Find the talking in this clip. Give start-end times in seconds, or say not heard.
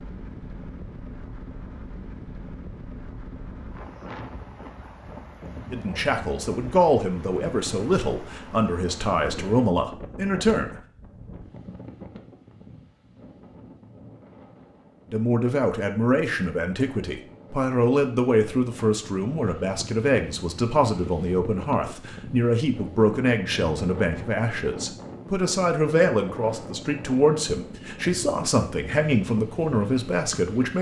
5.7-10.8, 15.1-30.7.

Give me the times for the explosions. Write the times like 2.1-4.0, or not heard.
not heard.